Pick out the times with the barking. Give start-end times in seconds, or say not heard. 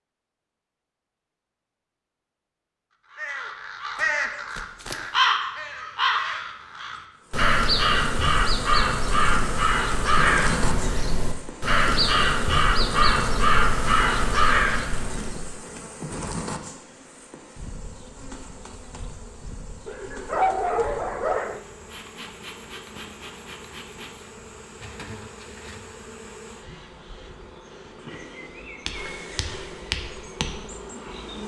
19.9-21.6.